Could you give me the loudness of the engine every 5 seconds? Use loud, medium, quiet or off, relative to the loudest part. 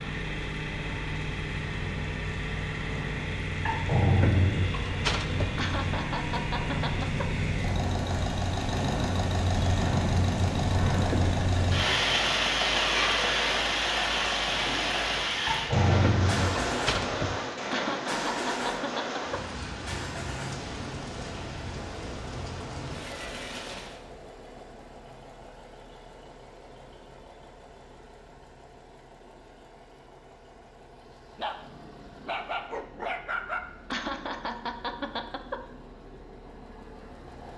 loud, loud, loud, loud, medium, quiet, quiet, quiet.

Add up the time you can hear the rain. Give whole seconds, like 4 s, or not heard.
24 s.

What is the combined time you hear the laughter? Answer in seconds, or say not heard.
5 s.